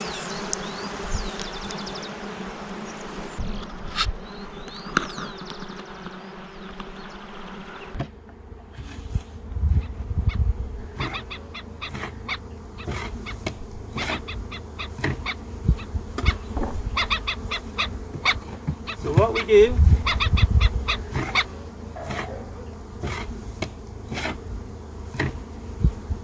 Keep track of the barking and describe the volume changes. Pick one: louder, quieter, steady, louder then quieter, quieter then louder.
louder.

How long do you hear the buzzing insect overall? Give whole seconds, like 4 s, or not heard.
26 s.